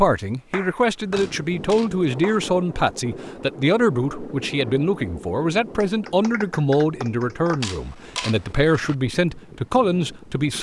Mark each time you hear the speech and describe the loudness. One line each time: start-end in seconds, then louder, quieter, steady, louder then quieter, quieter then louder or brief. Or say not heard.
0.0-10.5 steady.